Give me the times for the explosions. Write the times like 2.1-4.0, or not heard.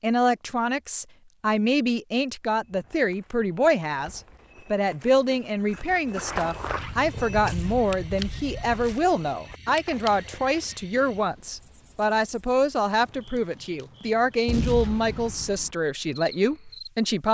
14.4-15.7.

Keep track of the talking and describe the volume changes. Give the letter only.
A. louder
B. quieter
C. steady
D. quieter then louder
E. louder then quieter
C.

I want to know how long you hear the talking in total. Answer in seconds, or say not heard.
17 s.